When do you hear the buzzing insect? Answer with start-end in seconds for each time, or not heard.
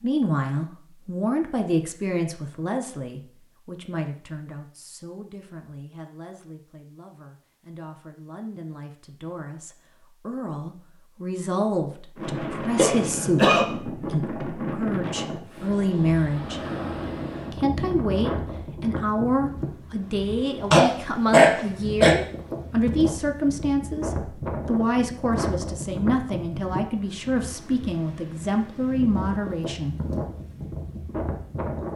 not heard.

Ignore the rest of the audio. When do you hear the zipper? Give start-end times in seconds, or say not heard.
not heard.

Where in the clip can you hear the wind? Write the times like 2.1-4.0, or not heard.
12.2-31.9.